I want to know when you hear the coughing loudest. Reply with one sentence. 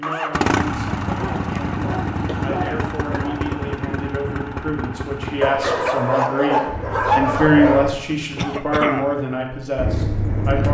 The loudest moment of the coughing is at 9 seconds.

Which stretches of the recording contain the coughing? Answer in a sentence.
You can hear the coughing from 2.2 to 3.4 s and from 8.3 to 9.2 s.